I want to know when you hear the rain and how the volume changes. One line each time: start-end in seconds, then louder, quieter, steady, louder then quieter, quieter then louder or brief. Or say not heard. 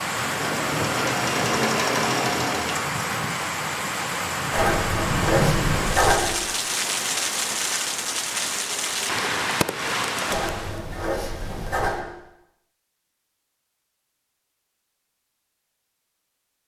0.0-10.8 steady.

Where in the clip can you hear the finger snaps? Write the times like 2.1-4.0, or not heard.
not heard.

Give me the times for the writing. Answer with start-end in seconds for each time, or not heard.
4.5-6.4, 10.2-12.1.